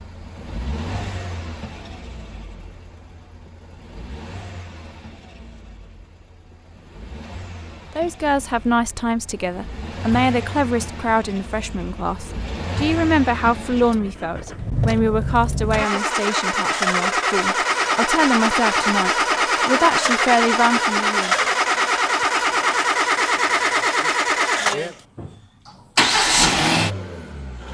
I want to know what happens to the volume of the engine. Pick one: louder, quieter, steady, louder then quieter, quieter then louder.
louder.